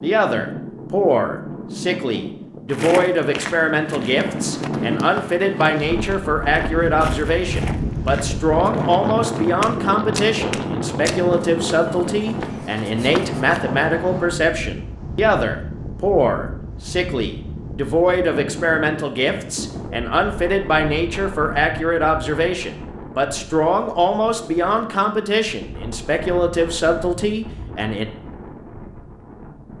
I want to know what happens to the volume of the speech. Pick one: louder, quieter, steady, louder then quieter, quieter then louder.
steady.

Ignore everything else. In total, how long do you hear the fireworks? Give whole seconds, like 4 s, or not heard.
not heard.